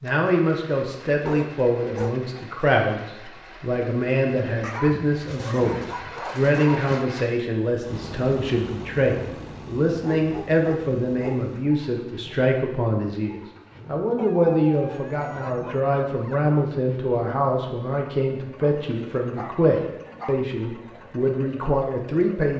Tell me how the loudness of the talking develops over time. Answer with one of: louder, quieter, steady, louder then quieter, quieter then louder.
steady.